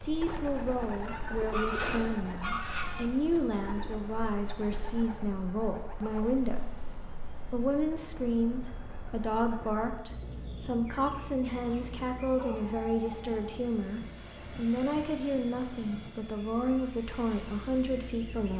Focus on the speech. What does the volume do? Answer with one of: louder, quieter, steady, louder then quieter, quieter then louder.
steady.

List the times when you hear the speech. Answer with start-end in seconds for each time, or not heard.
0.0-18.5.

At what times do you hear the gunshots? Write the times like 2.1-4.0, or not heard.
1.8-2.4.